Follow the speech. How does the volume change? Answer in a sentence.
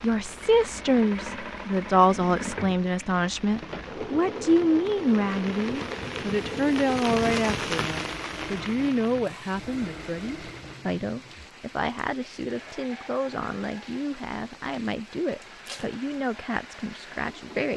The volume of the speech goes down.